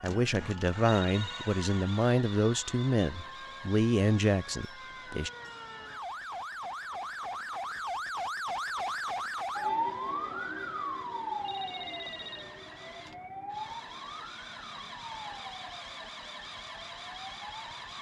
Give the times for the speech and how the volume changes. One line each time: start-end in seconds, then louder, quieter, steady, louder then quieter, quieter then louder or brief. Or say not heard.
0.0-5.3 steady.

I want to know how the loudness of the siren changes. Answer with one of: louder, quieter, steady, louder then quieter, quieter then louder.
louder then quieter.